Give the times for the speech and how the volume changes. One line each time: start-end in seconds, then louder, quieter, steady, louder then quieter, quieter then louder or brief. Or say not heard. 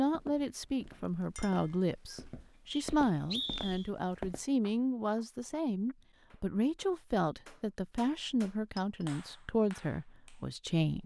0.0-11.0 steady.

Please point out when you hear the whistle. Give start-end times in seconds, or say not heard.
2.7-3.9.